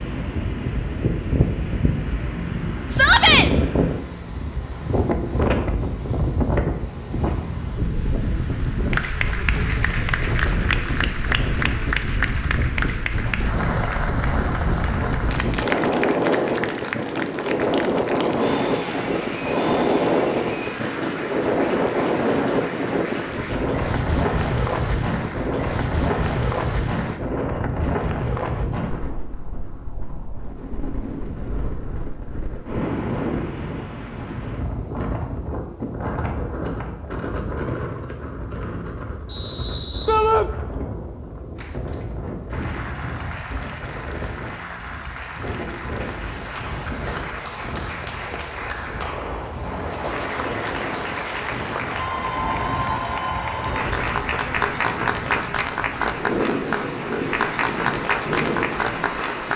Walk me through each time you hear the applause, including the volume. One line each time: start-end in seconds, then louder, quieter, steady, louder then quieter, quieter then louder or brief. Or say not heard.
8.9-27.2 quieter
41.5-59.5 louder.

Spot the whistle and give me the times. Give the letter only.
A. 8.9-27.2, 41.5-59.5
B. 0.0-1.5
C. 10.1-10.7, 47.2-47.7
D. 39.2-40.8
D.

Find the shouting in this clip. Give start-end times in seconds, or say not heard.
2.9-3.5, 40.0-40.5.